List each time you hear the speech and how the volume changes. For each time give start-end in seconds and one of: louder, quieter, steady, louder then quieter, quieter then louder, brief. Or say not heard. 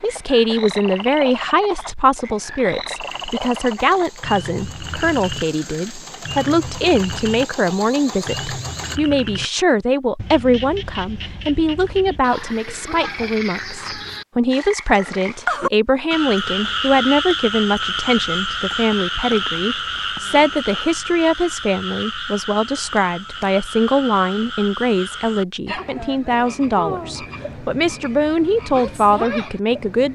0.0-30.0 steady.